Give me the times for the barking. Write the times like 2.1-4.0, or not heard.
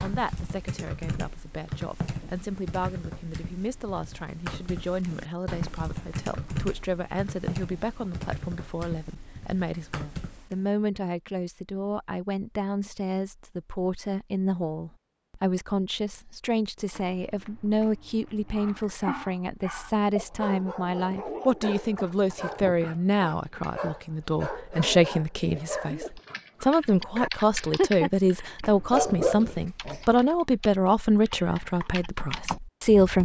18.5-29.9.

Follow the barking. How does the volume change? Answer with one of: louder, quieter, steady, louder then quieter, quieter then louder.
louder.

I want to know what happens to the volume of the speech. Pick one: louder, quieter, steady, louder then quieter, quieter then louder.
louder.